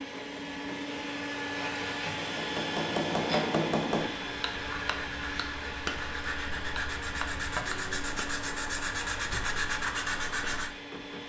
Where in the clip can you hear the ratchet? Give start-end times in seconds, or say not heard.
not heard.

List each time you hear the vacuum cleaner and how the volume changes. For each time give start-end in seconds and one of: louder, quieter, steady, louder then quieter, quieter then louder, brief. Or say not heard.
0.0-11.2 quieter.